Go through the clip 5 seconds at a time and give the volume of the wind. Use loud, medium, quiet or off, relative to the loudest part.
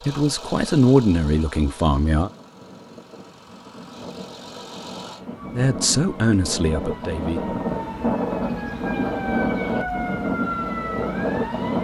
quiet, loud, loud.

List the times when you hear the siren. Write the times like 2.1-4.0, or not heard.
5.3-11.8.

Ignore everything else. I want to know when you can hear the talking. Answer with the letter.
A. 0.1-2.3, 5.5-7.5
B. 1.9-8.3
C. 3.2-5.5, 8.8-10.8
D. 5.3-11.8
A.